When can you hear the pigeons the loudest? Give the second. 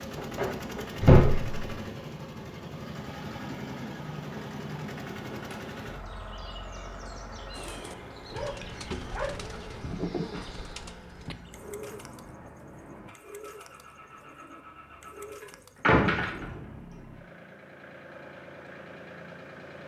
9 s.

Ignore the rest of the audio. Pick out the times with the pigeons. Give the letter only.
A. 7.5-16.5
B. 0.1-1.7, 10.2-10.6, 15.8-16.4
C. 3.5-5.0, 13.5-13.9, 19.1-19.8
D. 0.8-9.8
A.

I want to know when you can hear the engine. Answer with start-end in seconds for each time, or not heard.
0.0-19.8.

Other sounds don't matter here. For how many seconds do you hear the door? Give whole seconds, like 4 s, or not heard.
3 s.